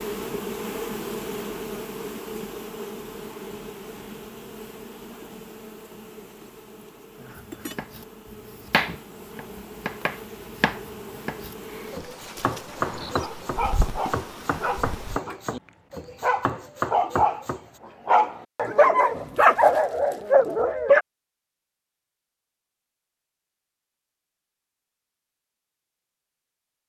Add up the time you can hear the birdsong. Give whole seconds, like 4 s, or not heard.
not heard.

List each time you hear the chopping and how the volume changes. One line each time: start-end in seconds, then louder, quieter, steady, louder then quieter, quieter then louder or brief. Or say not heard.
7.3-17.6 steady.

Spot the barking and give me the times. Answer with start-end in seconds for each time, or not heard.
12.8-15.4, 16.2-17.4, 18.1-21.1.